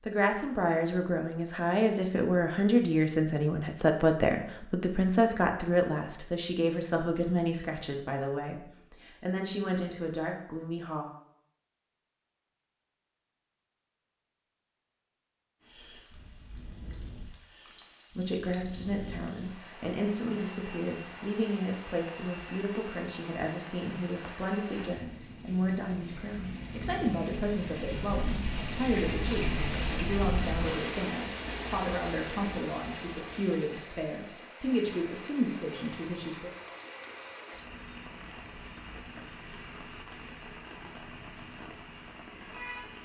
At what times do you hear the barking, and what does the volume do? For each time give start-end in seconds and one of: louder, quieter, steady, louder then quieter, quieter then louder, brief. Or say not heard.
not heard.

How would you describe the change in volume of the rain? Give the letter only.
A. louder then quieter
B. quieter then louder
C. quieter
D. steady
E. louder
A.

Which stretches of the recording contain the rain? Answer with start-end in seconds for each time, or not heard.
15.6-43.0.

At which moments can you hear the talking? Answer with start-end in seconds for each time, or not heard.
0.1-11.1, 18.1-36.5.